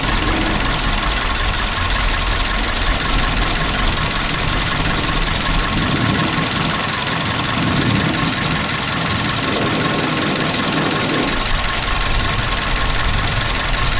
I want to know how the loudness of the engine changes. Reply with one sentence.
The loudness of the engine stays about the same.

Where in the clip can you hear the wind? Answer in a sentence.
You can hear the wind from 0.0 to 13.9 s.